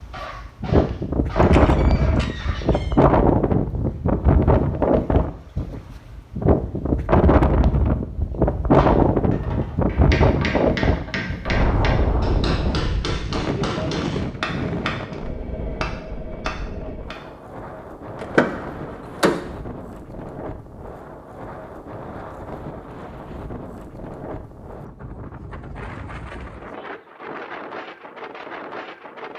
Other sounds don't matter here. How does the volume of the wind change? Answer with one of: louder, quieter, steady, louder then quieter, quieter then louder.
quieter.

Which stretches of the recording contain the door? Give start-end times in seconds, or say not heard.
1.4-3.0, 18.1-19.4.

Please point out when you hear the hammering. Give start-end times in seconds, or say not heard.
8.8-17.1.